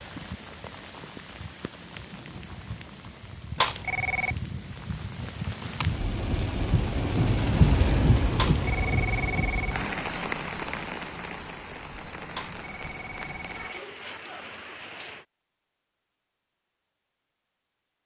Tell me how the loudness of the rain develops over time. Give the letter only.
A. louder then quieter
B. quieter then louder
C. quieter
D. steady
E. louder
A.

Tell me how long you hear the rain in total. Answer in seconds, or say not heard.
15 s.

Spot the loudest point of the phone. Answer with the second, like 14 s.
4 s.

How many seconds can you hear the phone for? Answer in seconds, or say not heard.
4 s.